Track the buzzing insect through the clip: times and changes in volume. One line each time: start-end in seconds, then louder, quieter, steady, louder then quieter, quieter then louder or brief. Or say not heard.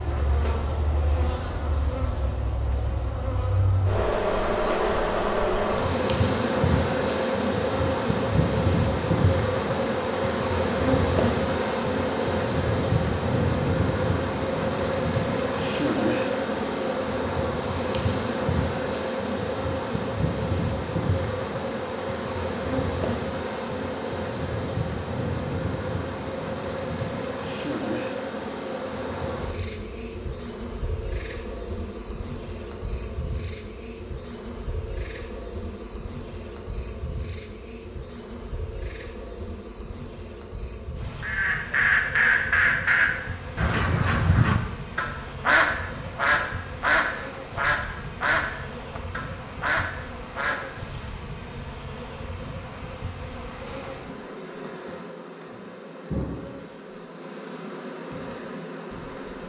0.0-59.4 quieter.